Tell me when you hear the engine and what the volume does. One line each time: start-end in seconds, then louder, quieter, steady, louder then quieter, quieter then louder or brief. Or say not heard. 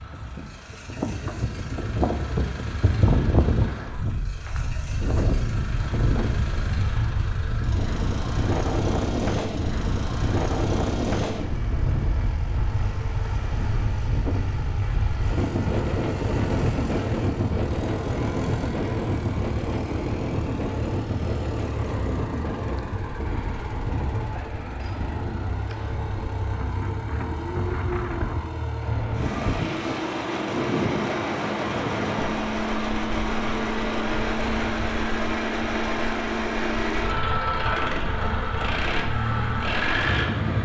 0.0-40.5 louder.